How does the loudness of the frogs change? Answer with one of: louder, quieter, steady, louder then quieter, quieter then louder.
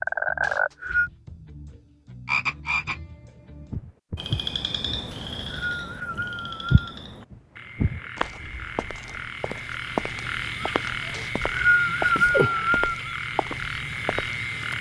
quieter then louder.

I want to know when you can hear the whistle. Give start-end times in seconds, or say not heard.
0.4-1.1, 5.1-6.9, 11.1-13.0.